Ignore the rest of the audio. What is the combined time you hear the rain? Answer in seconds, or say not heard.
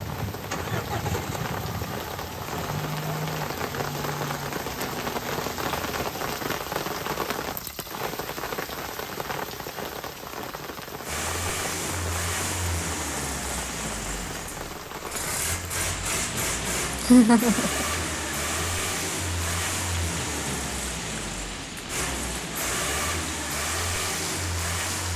25 s.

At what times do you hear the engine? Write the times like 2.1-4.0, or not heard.
0.0-6.4, 11.0-25.1.